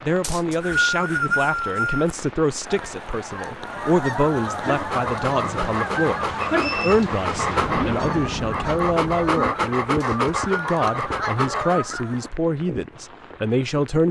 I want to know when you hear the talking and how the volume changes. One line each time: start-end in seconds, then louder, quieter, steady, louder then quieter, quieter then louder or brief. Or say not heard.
0.0-14.0 steady.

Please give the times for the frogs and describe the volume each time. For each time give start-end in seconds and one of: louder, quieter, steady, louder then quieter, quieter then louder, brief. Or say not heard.
not heard.